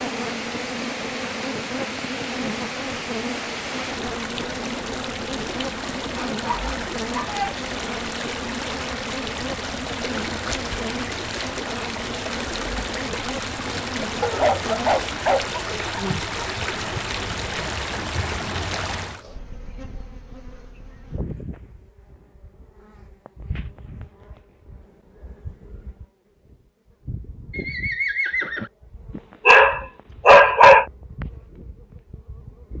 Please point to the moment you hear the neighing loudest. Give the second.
28 s.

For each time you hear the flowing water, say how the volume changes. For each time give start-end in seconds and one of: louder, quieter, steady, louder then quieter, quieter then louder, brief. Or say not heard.
0.0-19.2 steady.